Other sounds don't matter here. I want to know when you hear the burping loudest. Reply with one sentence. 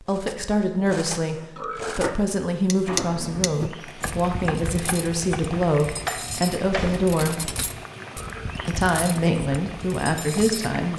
The volume of the burping peaks at 2 seconds.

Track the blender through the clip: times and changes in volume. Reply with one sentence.
The blender can't be heard in this clip.